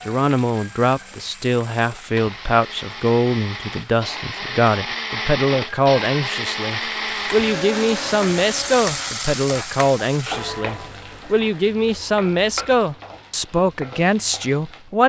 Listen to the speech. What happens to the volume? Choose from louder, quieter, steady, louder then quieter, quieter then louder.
steady.